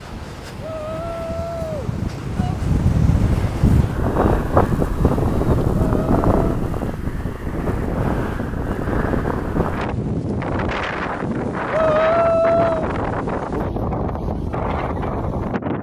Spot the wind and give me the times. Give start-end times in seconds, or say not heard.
0.0-15.7.